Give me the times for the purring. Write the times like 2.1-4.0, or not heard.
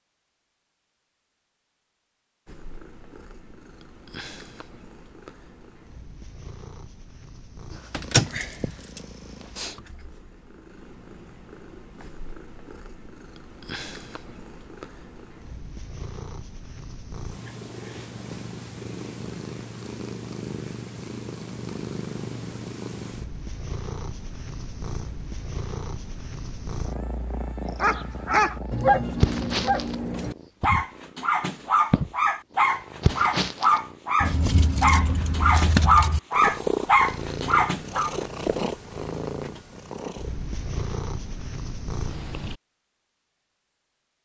2.5-42.6.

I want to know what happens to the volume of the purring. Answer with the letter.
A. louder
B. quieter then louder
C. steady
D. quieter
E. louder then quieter
A.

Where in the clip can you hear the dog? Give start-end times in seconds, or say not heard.
27.8-38.1.